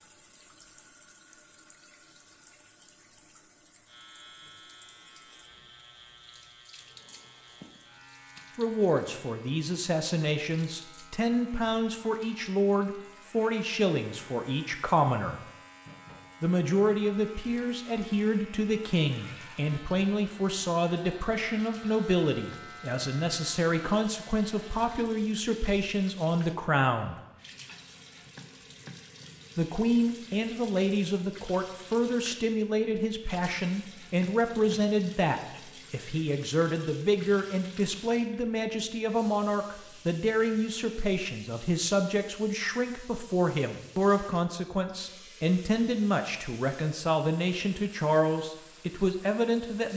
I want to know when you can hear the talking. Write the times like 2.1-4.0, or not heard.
8.6-15.4, 16.4-27.2, 29.6-49.9.